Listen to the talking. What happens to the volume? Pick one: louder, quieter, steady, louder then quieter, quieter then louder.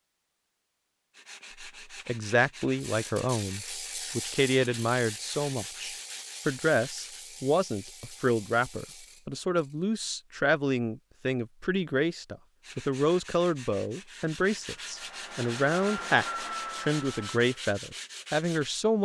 steady.